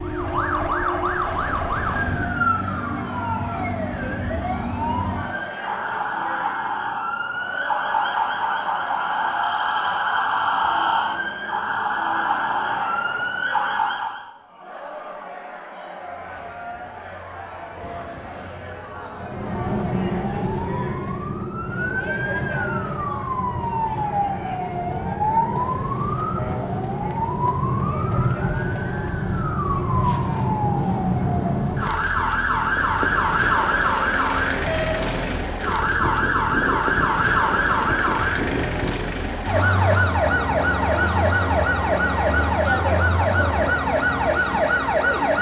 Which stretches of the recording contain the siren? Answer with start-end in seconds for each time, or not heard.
0.0-14.3, 19.1-45.3.